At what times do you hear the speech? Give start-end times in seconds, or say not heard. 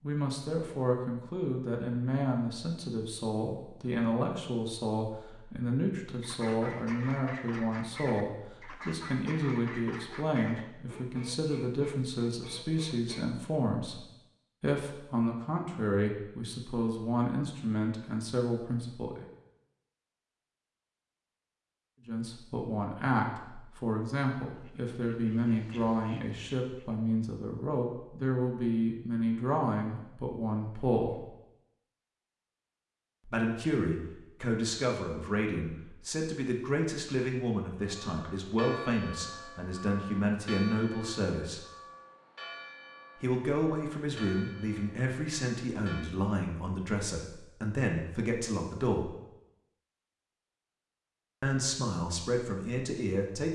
0.0-14.0, 14.6-19.2, 22.1-31.2, 33.2-41.6, 43.2-49.1, 51.4-53.4.